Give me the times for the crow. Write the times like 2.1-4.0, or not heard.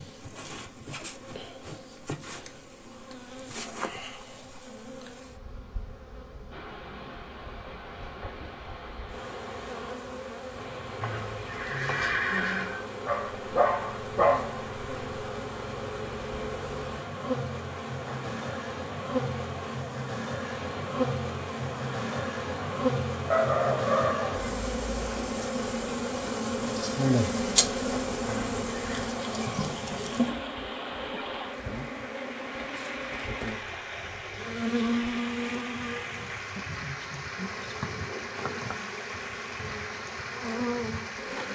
not heard.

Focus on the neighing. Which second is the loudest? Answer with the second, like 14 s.
12 s.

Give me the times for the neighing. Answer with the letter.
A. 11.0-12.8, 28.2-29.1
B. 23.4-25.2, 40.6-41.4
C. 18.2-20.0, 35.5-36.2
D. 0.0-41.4
A.